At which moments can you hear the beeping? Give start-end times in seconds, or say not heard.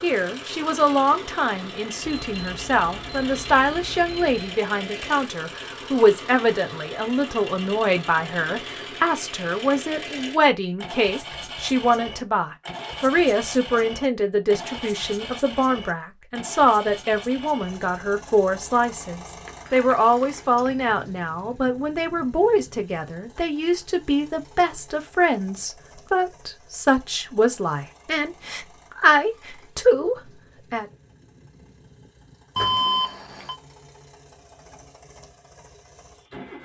2.0-4.6, 19.4-20.9, 32.5-33.5.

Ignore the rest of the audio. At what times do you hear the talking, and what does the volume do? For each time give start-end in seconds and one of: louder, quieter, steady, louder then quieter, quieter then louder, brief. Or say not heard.
0.0-30.9 steady.